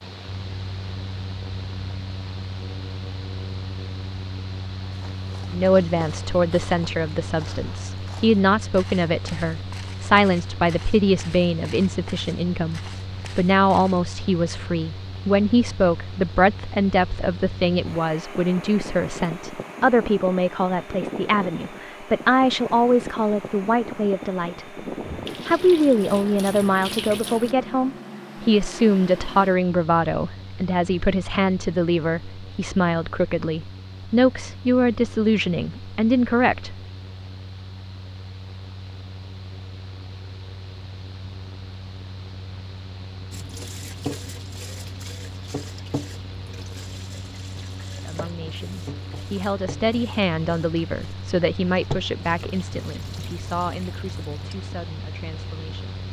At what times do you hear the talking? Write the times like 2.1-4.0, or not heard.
5.5-24.6, 25.4-36.8, 48.0-56.0.